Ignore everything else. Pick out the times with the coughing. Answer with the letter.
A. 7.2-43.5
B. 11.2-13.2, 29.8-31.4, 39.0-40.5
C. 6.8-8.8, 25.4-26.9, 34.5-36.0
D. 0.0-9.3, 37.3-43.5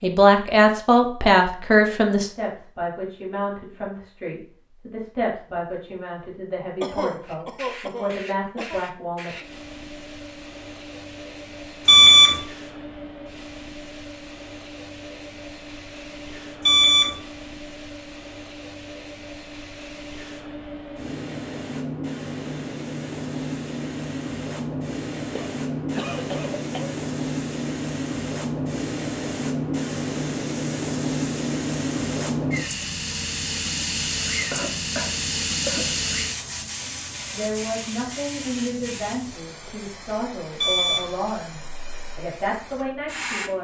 C.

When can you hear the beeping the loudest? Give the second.
12 s.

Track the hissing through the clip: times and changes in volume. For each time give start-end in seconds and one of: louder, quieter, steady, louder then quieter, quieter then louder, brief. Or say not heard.
7.2-43.5 louder then quieter.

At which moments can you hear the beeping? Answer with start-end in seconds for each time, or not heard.
11.8-12.4, 16.6-17.1, 40.5-41.1.